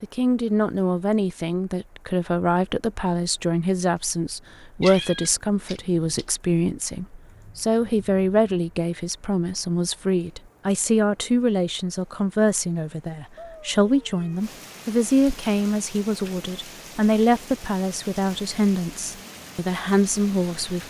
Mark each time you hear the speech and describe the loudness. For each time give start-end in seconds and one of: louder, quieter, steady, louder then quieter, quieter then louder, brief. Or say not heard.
0.0-20.8 steady.